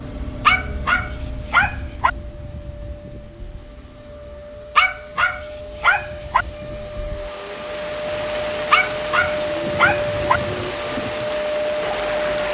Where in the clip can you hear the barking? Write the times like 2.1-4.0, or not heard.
0.5-2.1, 4.8-6.5, 8.7-10.4.